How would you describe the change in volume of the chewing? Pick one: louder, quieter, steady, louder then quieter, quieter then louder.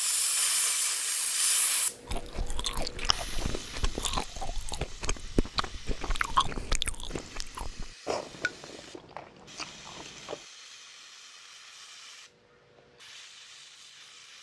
louder then quieter.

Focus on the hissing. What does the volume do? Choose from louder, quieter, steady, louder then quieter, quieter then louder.
quieter.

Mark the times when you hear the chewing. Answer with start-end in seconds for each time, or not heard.
2.0-10.4.